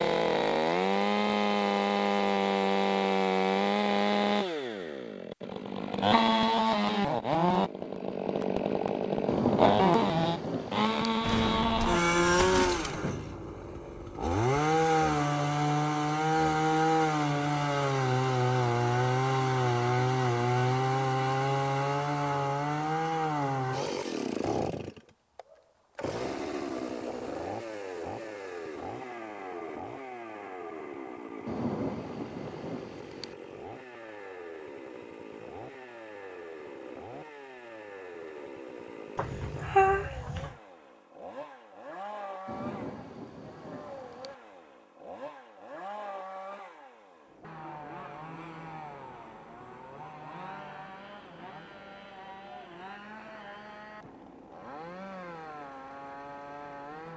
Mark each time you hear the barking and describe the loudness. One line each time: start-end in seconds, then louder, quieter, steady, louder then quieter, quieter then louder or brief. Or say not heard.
not heard.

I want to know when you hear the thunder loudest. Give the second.
10 s.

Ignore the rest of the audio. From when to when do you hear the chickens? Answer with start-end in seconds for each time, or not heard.
not heard.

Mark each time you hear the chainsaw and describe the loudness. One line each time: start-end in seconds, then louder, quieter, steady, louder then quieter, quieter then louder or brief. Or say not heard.
0.0-57.1 quieter.